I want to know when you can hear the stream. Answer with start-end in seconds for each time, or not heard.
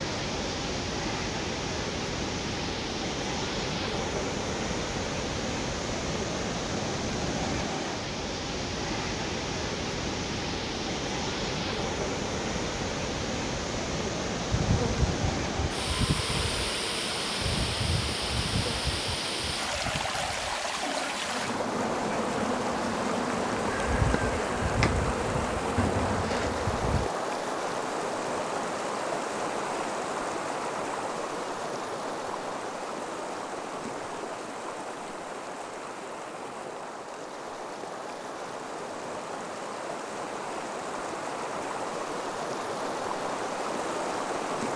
0.0-44.7.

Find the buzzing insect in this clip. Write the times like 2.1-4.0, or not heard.
14.5-27.1.